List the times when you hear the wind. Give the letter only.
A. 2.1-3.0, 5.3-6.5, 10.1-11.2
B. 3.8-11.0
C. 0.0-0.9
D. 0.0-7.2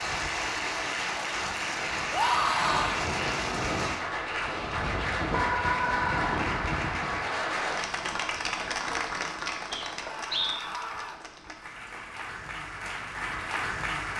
D.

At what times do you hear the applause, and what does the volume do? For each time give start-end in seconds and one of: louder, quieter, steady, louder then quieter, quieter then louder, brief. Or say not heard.
0.0-14.1 quieter.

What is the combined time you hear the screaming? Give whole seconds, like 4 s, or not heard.
3 s.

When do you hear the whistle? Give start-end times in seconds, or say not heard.
9.7-10.7.